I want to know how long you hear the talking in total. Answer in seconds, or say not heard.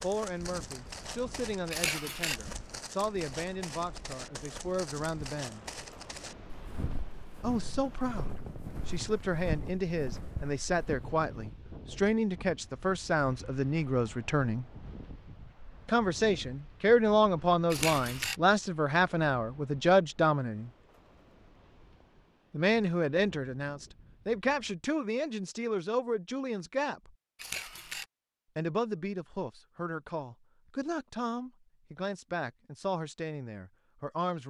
28 s.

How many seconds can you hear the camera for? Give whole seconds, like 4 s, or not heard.
2 s.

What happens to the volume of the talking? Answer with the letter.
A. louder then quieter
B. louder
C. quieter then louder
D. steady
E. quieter
A.